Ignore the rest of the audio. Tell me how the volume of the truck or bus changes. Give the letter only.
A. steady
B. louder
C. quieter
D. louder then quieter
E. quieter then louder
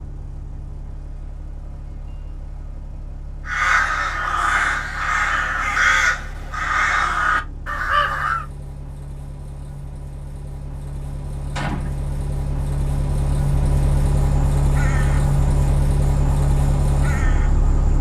B.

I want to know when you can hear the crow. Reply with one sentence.
You can hear the crow from 3.5 to 8.4 s and from 14.2 to 17.9 s.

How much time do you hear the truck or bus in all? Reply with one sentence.
The truck or bus can be heard for 18 seconds in total.